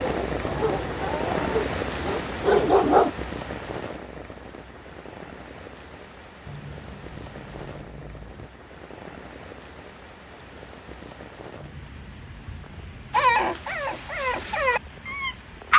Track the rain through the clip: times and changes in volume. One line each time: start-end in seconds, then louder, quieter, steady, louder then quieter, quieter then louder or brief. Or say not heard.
0.0-15.7 quieter.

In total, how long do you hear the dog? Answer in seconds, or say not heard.
6 s.